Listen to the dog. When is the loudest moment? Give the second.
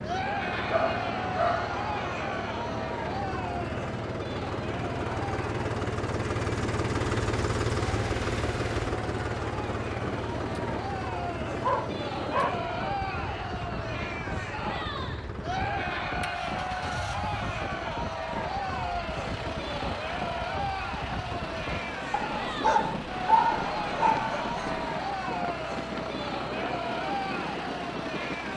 23 s.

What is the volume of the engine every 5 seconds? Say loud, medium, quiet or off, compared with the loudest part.
medium, loud, medium, medium, medium, medium.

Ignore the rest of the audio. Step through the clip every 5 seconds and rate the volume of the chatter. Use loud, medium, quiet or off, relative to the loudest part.
loud, medium, loud, loud, loud, loud.